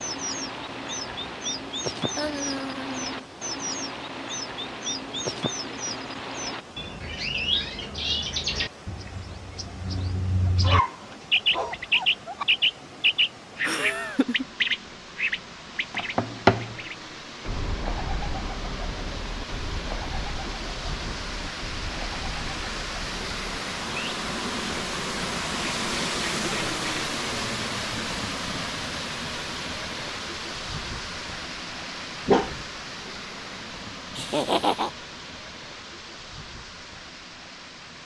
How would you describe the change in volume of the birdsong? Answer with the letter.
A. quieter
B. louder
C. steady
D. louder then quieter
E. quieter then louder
D.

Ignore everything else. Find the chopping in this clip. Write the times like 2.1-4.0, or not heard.
not heard.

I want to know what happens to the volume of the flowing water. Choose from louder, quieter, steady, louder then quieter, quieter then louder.
louder then quieter.